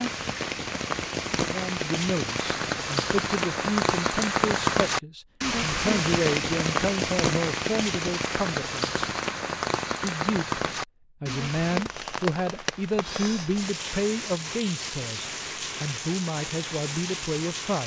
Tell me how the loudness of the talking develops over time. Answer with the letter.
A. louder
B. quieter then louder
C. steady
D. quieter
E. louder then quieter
C.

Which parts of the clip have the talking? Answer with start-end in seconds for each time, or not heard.
1.4-9.1, 10.0-17.8.